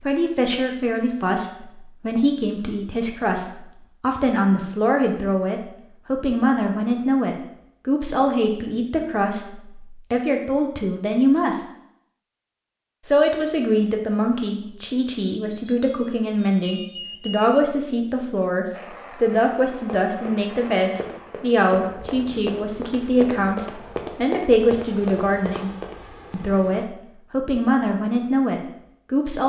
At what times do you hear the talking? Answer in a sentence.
The talking can be heard from 0.0 to 11.7 s, from 13.1 to 25.7 s and from 26.3 to 29.4 s.